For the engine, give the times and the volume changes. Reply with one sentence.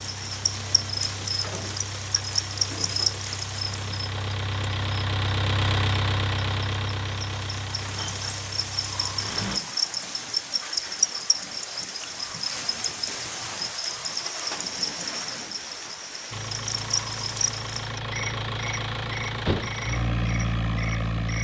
The engine can be heard from 0.0 to 9.6 s, getting louder then quieter; and from 16.3 to 21.4 s, getting louder.